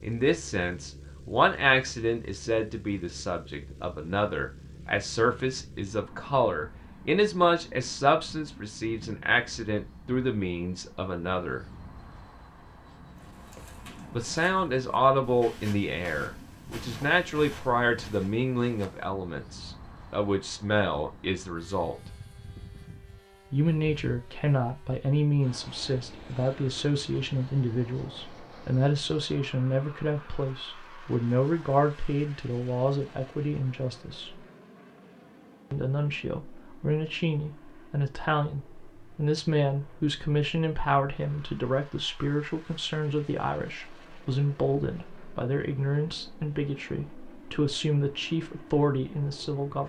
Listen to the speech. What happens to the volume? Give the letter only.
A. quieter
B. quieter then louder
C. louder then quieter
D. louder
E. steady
E.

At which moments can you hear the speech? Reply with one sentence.
The speech can be heard from 0.0 to 11.7 s, from 14.1 to 21.9 s, from 23.5 to 34.3 s and from 35.7 to 49.8 s.